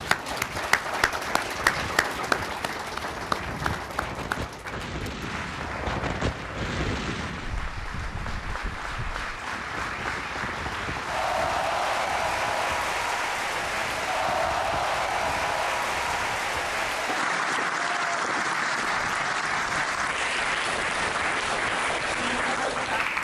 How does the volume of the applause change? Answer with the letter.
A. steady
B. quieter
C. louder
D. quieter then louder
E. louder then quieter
D.